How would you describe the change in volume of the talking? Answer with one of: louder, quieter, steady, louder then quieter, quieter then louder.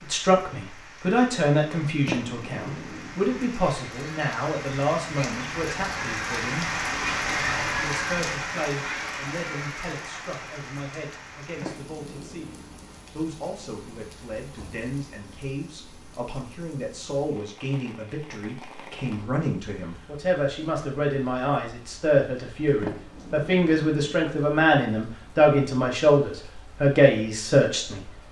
quieter then louder.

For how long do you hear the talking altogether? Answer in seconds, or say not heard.
27 s.